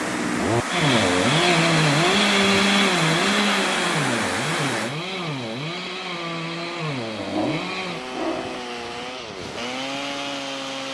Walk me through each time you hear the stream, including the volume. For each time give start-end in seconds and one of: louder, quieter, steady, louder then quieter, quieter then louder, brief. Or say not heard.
0.0-10.8 quieter.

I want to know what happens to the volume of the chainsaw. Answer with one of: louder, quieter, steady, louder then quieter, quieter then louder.
quieter.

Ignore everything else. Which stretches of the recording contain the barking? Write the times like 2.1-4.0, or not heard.
7.2-8.6.